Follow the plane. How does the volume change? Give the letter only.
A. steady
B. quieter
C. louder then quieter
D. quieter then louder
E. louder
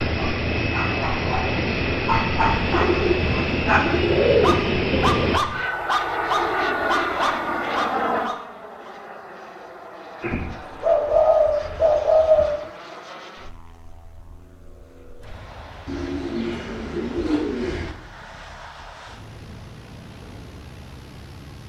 B.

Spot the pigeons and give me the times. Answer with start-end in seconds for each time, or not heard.
2.5-5.2, 10.2-12.5, 15.8-17.9.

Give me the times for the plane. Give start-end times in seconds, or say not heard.
0.0-21.6.